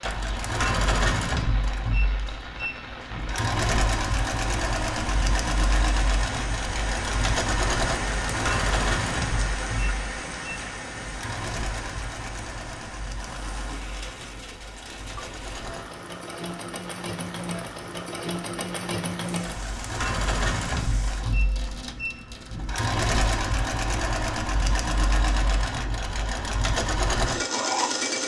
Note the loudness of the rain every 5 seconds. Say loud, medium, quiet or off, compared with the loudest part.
medium, loud, medium, medium, medium, off.